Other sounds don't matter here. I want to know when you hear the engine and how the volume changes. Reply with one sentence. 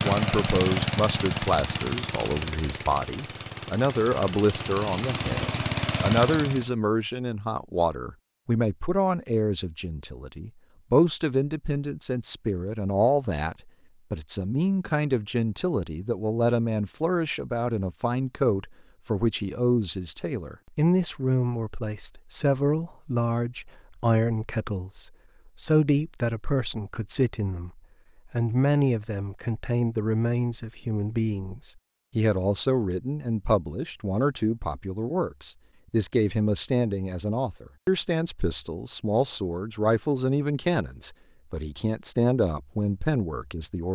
You can hear the engine from 0.0 to 6.7 s, getting quieter then louder.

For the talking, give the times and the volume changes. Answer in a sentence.
You can hear the talking from 0.0 to 43.9 s, at a steady volume.